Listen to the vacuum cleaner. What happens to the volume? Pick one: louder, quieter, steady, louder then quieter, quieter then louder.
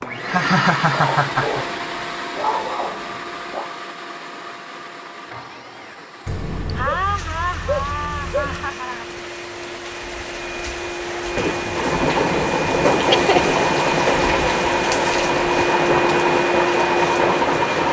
quieter then louder.